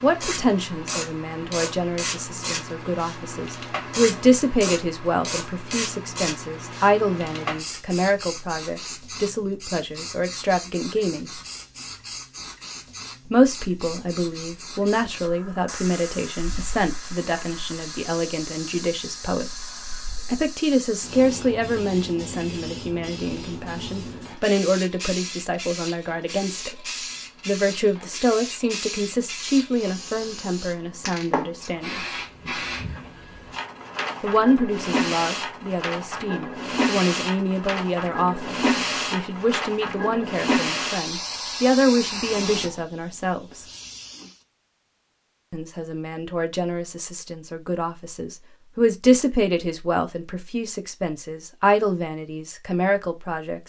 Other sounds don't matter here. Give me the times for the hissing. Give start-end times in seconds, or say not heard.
0.0-44.4.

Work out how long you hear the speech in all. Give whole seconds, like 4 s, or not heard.
46 s.